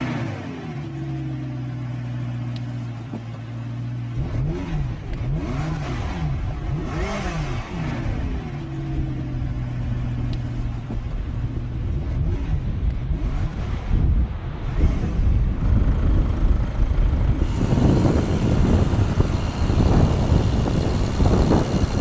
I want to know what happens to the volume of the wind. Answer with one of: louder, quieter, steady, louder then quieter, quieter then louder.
louder.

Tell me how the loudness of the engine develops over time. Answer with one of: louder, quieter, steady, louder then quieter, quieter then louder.
quieter.